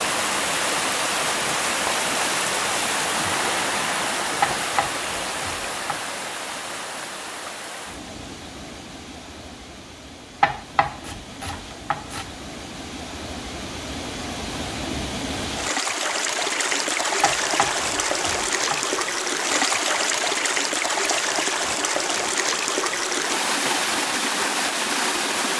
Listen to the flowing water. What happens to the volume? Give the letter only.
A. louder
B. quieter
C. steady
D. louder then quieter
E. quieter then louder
E.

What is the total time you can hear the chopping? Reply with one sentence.
You can hear the chopping for 5 seconds altogether.